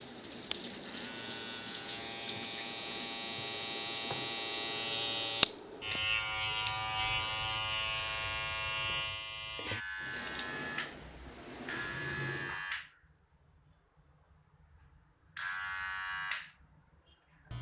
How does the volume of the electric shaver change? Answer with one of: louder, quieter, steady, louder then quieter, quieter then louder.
louder then quieter.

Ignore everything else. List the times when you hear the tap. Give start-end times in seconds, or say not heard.
0.0-5.3, 10.0-12.6.